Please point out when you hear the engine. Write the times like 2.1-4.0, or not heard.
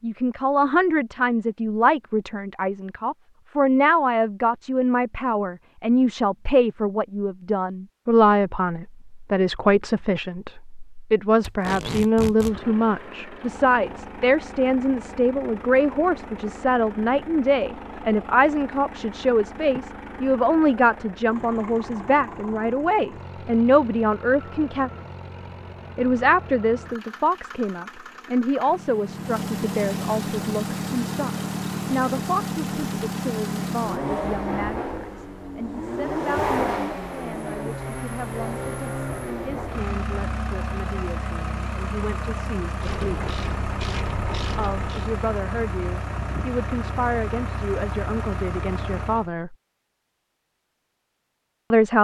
12.4-49.3.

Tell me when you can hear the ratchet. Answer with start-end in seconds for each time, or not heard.
42.8-45.1.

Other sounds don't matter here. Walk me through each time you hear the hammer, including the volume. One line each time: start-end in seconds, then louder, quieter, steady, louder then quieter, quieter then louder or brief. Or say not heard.
not heard.